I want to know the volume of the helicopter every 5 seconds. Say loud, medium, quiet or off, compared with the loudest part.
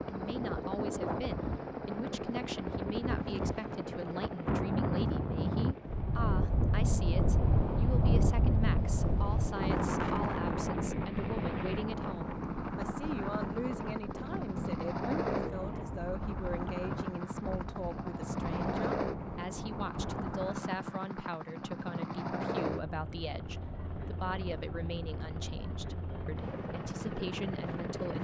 loud, medium, loud, loud, loud, loud.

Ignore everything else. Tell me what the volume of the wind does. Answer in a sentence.
The volume of the wind goes up, then down.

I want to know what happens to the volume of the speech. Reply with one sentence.
The volume of the speech stays about the same.